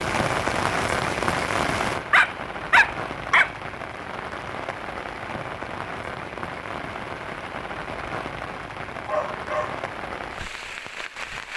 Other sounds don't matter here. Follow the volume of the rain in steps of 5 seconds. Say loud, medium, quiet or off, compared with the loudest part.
loud, medium, medium.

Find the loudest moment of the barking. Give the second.
3 s.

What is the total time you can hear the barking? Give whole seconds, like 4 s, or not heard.
2 s.